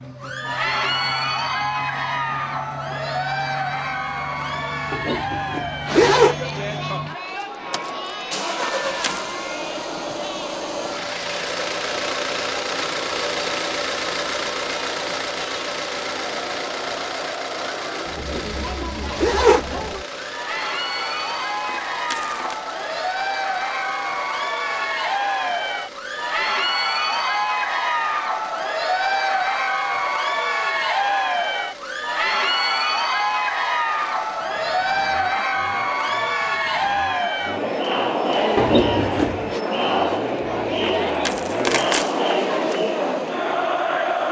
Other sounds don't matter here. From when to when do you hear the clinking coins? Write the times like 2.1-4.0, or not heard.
8.6-9.4, 21.9-22.6, 41.0-42.1.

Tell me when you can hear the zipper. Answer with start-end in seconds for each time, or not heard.
4.9-6.3, 18.1-19.6, 38.5-39.6.